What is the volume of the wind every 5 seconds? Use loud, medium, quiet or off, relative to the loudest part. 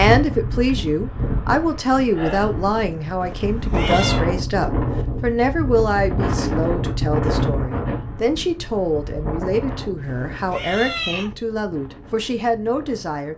loud, loud, quiet.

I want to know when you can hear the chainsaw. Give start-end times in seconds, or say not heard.
not heard.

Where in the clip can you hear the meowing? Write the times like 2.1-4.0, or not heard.
3.2-4.2, 9.9-11.3.